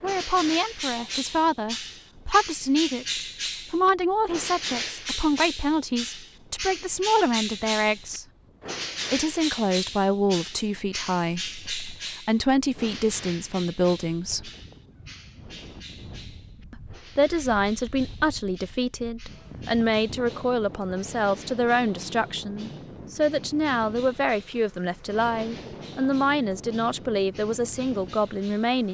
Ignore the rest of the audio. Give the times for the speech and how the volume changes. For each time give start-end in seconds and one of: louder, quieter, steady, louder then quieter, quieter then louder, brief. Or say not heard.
0.0-8.2 steady
9.1-14.5 quieter then louder
16.7-28.8 steady.